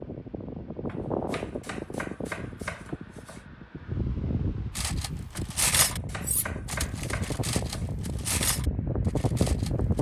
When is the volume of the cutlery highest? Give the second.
6 s.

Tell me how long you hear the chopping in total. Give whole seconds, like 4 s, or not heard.
5 s.